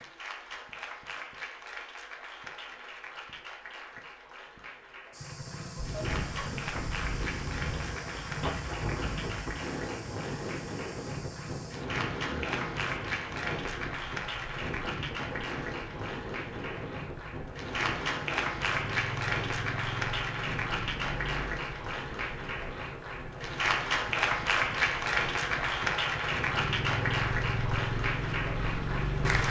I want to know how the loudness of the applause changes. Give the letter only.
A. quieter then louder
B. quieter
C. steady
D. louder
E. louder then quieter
D.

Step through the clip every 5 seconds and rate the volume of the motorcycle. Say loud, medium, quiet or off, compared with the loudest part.
off, medium, medium, medium, medium, loud.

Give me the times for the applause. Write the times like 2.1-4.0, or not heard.
0.0-29.4.